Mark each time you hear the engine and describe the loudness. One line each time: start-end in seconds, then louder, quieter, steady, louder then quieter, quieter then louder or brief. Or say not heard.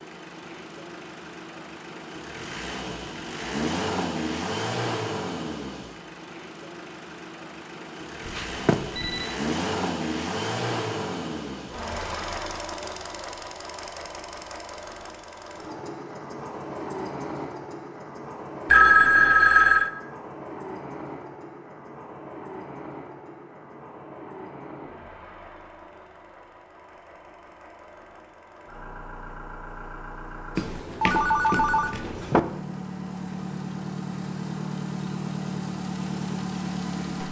0.0-37.2 quieter then louder.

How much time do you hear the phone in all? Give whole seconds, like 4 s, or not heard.
4 s.